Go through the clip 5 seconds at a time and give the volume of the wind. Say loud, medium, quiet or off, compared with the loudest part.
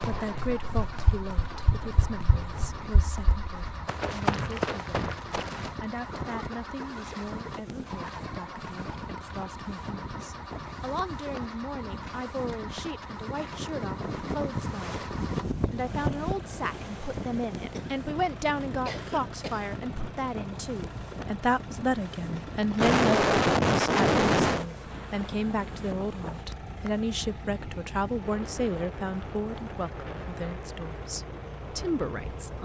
medium, medium, loud, loud, medium, medium, medium.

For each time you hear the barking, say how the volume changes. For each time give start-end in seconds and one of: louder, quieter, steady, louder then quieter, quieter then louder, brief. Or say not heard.
not heard.